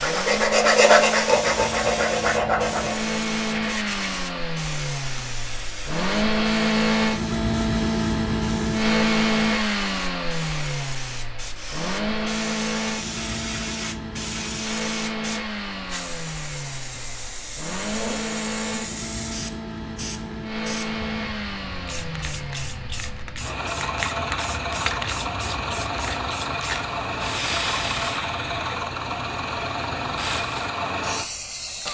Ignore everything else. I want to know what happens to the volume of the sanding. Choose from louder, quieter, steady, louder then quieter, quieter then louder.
quieter.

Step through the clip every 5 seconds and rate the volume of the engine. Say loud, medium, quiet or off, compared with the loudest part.
medium, loud, medium, medium, medium, medium, medium.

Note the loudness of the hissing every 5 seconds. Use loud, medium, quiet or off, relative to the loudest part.
loud, medium, loud, loud, loud, loud, loud.